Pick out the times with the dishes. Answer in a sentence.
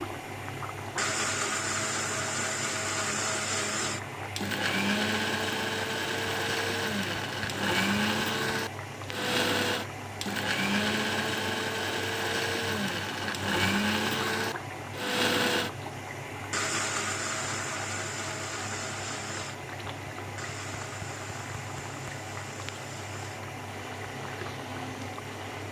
The dishes can't be heard in this clip.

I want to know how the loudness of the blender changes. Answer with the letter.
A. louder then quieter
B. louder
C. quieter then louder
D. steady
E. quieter
E.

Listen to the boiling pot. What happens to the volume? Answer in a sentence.
The loudness of the boiling pot stays about the same.